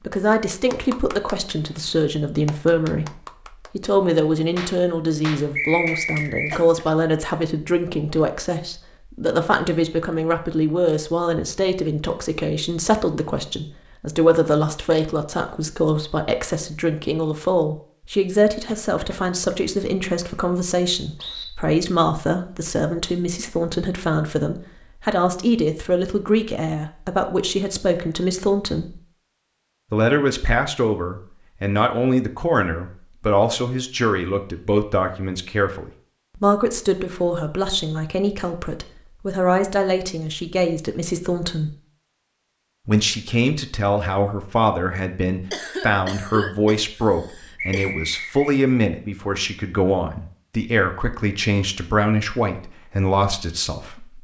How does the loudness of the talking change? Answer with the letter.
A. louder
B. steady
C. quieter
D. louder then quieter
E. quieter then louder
B.